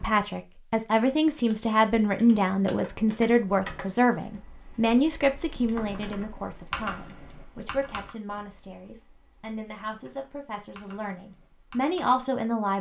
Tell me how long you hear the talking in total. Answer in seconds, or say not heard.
13 s.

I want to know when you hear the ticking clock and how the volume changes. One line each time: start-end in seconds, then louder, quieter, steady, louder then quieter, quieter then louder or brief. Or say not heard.
not heard.